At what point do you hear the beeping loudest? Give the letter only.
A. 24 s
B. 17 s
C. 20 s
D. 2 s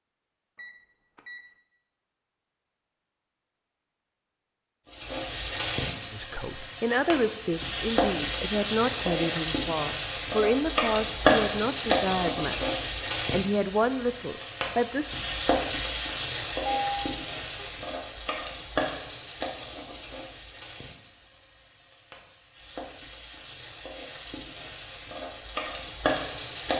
B.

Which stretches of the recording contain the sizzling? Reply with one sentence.
You can hear the sizzling from 4.9 to 26.7 s.